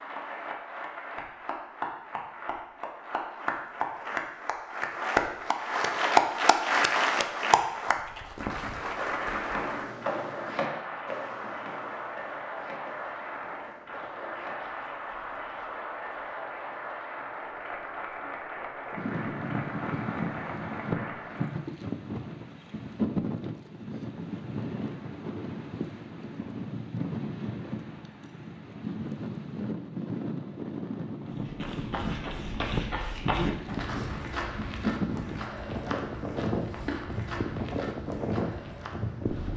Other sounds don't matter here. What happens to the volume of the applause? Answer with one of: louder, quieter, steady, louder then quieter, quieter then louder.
louder then quieter.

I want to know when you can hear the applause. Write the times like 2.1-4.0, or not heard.
0.0-21.6.